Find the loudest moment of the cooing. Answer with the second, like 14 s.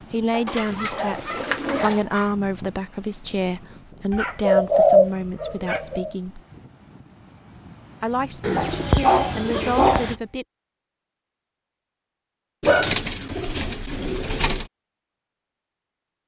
5 s.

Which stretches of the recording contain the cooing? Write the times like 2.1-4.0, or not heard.
0.5-2.0, 4.1-6.2, 8.4-10.2, 12.6-14.7.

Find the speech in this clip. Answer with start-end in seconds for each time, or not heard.
0.1-6.4, 8.0-10.4.